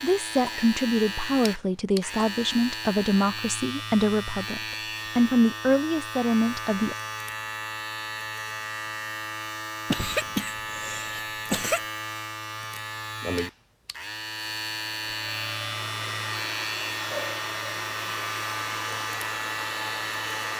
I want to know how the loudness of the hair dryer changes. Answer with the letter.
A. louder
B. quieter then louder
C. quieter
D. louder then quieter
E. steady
E.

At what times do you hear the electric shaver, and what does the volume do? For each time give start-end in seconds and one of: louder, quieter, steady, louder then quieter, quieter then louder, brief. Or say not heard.
0.0-20.5 steady.